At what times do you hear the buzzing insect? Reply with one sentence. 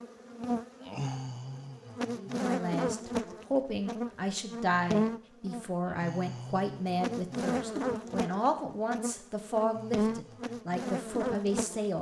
You can hear the buzzing insect from 0.0 to 11.9 s.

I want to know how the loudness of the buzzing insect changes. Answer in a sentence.
The loudness of the buzzing insect stays about the same.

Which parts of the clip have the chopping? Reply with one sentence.
The chopping can't be heard in this clip.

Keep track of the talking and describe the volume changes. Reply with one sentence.
The volume of the talking stays about the same.